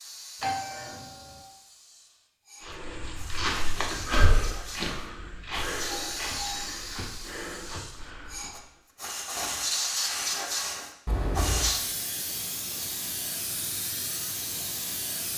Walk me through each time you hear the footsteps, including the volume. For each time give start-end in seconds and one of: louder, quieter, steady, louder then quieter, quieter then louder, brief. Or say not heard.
2.6-8.6 quieter.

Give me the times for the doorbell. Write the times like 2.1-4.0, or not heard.
0.4-1.4, 5.8-6.8, 11.1-11.7.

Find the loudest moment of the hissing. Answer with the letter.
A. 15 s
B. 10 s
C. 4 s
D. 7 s
B.